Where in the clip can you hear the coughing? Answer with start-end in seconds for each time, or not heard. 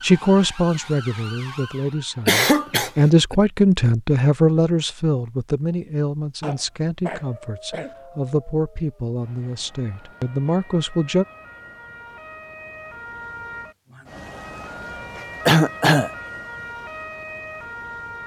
2.2-3.4, 6.4-8.0, 15.4-16.1.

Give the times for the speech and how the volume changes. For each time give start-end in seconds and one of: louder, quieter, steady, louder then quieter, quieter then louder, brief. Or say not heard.
0.0-11.2 louder then quieter.